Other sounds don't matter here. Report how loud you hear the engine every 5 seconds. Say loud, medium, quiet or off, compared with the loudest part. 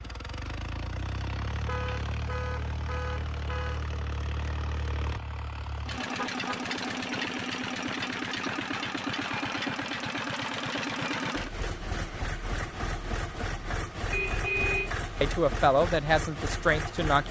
medium, loud, loud, loud.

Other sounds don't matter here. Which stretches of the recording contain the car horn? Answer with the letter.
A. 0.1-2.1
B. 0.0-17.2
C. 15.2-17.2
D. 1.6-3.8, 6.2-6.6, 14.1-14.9
D.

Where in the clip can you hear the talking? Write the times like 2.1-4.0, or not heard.
15.2-17.2.